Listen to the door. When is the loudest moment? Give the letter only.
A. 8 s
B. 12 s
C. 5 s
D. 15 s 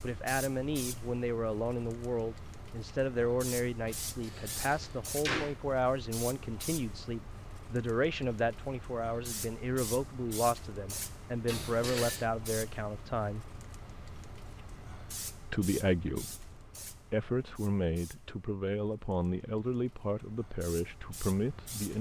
C.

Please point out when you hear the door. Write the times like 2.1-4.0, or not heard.
3.9-5.5, 11.4-12.2.